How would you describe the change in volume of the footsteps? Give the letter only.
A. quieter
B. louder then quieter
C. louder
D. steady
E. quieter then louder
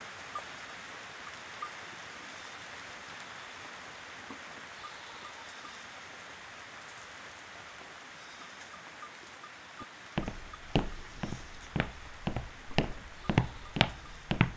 E.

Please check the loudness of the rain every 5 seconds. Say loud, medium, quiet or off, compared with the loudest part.
loud, loud, medium.